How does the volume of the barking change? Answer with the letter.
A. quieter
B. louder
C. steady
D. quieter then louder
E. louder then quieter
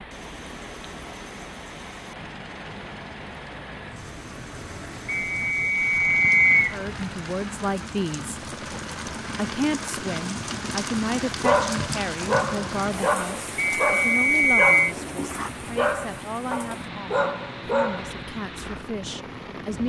C.